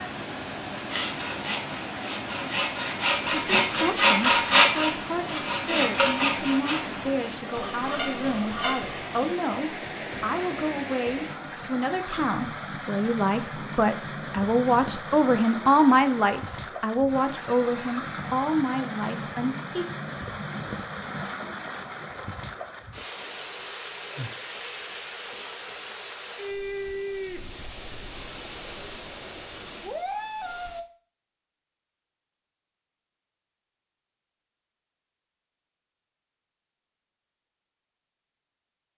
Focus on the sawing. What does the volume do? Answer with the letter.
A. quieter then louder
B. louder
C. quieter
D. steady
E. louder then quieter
E.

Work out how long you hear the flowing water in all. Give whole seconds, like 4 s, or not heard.
31 s.